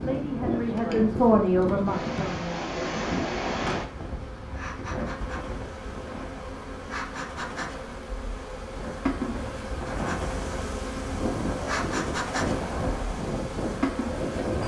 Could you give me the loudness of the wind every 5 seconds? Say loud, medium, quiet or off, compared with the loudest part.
loud, medium, loud.